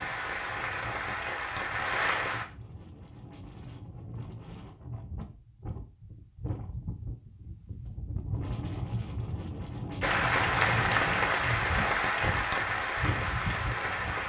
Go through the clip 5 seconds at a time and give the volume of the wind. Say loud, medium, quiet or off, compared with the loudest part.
medium, loud, loud.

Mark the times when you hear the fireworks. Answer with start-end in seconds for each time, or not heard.
not heard.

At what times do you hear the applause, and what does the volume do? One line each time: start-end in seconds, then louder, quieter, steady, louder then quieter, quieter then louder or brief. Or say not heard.
0.0-2.5 brief
10.0-14.2 quieter.